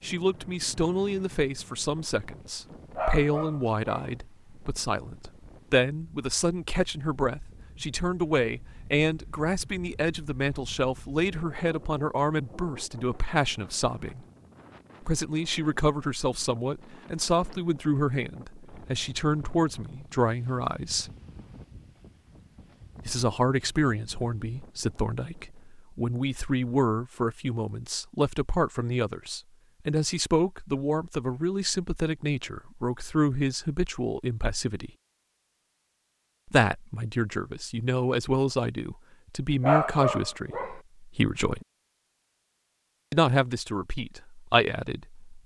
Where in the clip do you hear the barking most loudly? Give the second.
40 s.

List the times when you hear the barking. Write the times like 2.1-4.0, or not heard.
3.0-4.1, 39.6-40.8.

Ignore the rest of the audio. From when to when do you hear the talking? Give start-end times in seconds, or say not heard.
0.0-14.2, 15.0-21.1, 23.1-34.9, 36.5-41.6, 43.1-45.4.